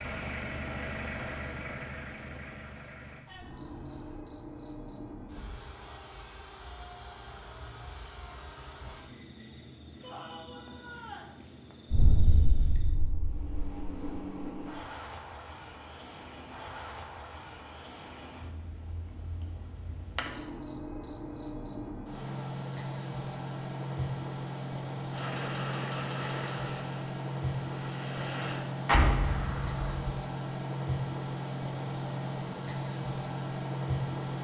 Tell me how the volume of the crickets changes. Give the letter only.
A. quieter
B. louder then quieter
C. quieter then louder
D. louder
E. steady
D.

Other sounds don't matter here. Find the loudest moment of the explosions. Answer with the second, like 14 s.
29 s.